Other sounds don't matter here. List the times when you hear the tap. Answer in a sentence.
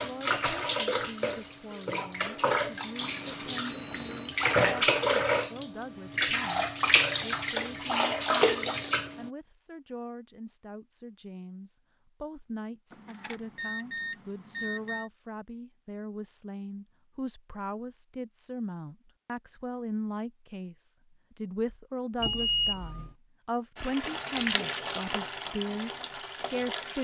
The tap can be heard from 0.0 to 9.3 s and from 23.8 to 26.9 s.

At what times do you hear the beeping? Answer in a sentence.
The beeping can be heard from 3.0 to 4.3 s, from 12.9 to 15.1 s and from 22.2 to 23.1 s.